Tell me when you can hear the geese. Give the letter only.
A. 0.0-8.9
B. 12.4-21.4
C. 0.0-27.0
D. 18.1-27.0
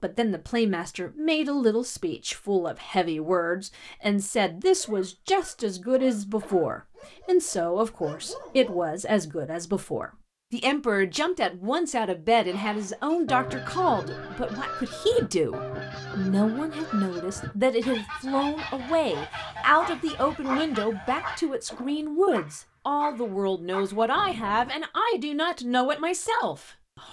B.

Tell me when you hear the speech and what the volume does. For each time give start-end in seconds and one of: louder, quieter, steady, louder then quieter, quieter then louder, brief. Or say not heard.
0.0-27.0 steady.